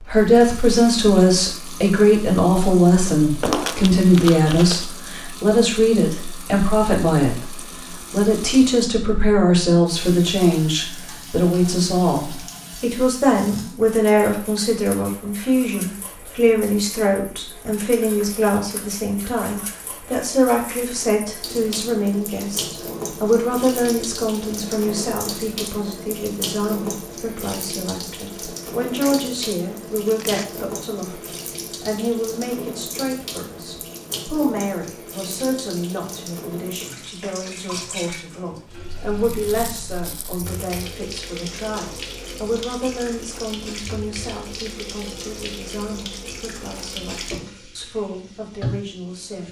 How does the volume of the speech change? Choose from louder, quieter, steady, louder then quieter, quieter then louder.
quieter.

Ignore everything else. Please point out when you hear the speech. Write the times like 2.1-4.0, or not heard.
0.1-49.4.